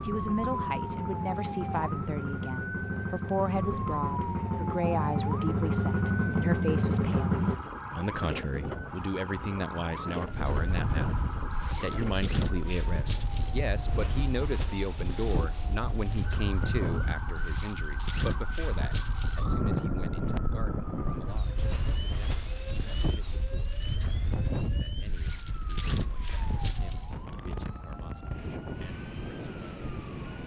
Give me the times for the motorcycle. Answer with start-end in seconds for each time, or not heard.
0.0-7.6.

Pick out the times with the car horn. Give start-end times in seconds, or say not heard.
not heard.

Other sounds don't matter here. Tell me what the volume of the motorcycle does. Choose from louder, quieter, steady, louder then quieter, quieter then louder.
louder.